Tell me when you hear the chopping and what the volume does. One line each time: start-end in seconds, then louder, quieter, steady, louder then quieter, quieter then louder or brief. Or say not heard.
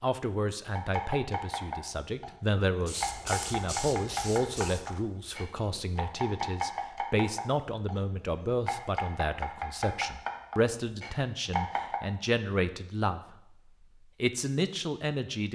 0.8-12.0 steady.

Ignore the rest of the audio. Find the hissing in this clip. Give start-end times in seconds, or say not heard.
2.8-5.0.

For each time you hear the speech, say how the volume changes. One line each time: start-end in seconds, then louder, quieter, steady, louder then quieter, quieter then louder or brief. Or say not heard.
0.0-15.5 steady.